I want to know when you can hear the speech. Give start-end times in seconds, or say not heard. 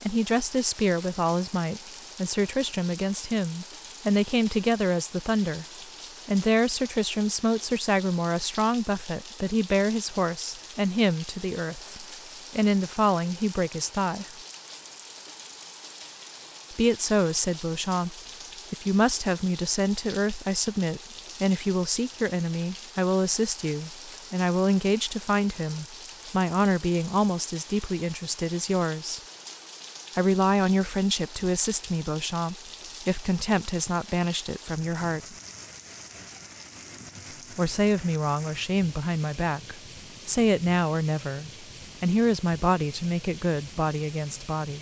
0.0-5.7, 6.2-14.2, 16.7-29.2, 30.1-35.4, 37.5-44.7.